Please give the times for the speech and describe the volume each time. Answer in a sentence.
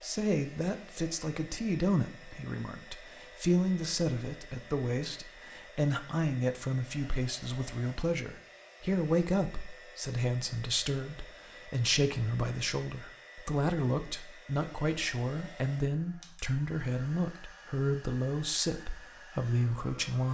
The speech can be heard from 0.0 to 20.2 s, at a steady volume.